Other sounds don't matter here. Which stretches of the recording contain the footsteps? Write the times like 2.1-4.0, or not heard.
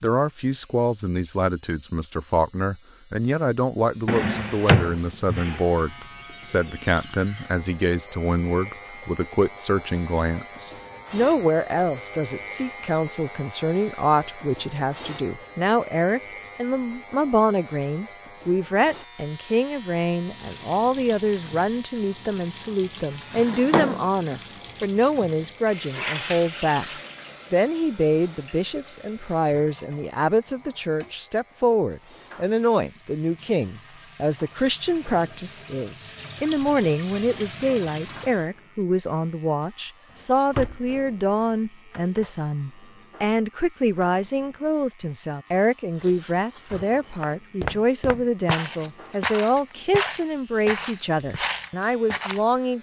46.0-52.4.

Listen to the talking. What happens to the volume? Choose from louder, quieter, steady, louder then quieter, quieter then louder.
steady.